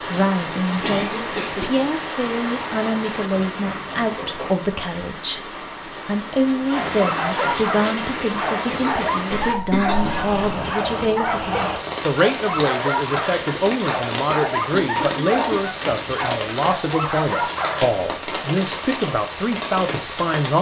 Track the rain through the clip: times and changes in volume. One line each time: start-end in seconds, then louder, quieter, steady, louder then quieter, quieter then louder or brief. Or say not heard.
0.0-20.5 steady.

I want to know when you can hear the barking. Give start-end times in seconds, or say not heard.
6.8-18.5.